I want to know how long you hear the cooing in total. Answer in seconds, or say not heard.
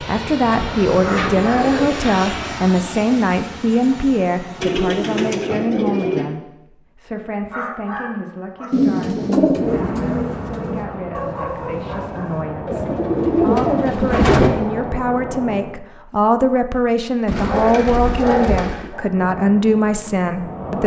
9 s.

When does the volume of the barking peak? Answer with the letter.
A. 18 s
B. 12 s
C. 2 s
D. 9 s
A.